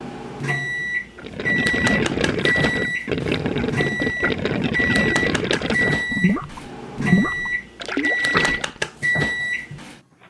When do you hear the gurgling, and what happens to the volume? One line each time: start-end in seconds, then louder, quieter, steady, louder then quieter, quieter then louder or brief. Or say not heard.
1.1-8.8 steady.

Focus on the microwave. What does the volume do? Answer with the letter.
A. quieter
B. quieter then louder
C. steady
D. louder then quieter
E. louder
C.